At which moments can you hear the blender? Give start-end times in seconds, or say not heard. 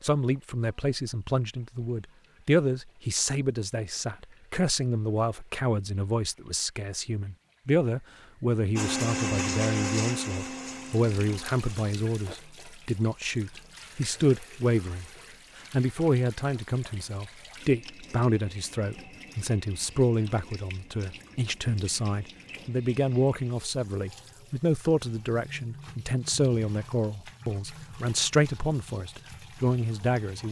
8.8-12.4.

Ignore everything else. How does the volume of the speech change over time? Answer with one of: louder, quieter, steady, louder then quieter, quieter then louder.
steady.